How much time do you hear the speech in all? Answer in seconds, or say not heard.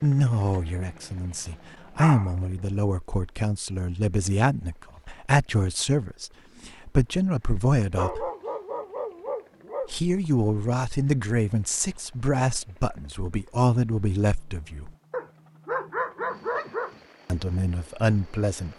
15 s.